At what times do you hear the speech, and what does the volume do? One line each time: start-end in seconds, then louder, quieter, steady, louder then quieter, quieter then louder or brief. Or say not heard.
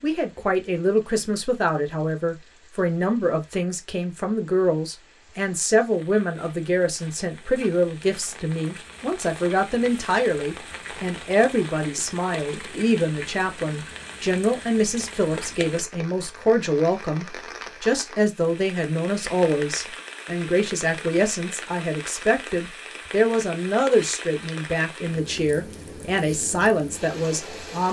0.0-27.8 steady.